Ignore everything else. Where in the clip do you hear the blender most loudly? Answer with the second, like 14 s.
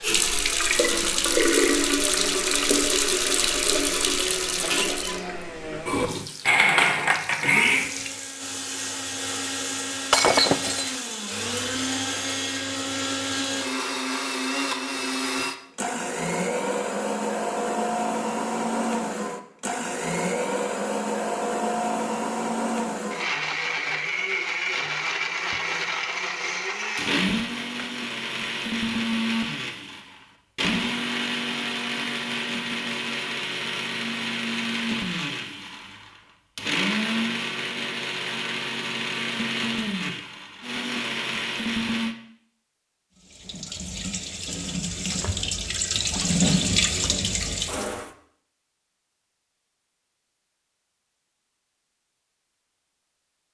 7 s.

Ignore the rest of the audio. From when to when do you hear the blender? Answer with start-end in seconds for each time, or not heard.
0.0-42.1.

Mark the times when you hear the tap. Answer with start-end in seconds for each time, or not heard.
0.0-8.4, 43.1-48.1.